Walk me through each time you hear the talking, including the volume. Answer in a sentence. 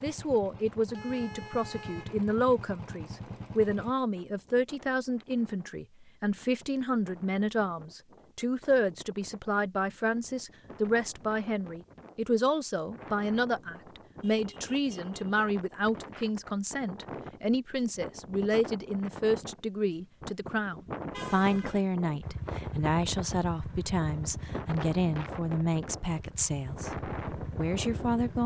You can hear the talking from 0.0 to 28.4 s, at a steady volume.